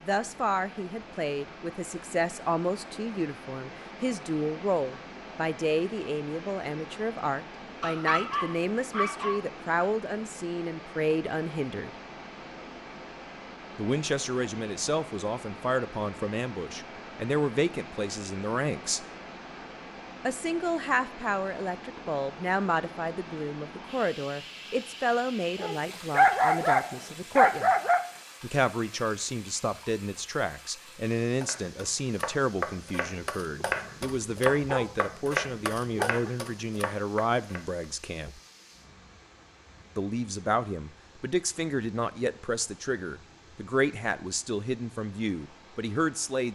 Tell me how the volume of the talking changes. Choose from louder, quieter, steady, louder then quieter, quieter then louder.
steady.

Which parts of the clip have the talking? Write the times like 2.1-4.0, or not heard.
0.0-11.9, 13.8-19.1, 20.2-27.7, 28.4-38.4, 40.0-46.5.